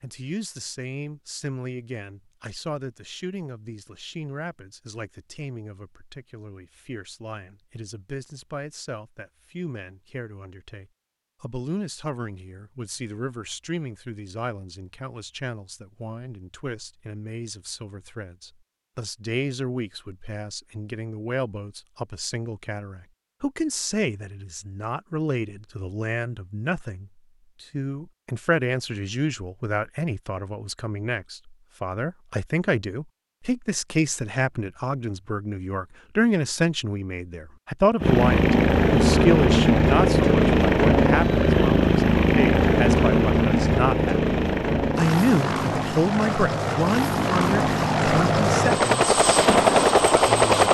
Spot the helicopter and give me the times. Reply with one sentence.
The helicopter can be heard from 38.0 to 50.6 s.